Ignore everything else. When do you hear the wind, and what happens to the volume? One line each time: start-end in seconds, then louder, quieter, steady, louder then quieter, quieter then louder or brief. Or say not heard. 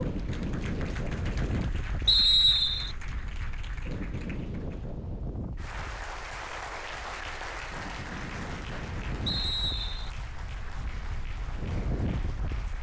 0.0-12.7 quieter then louder.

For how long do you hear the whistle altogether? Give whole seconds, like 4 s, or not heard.
2 s.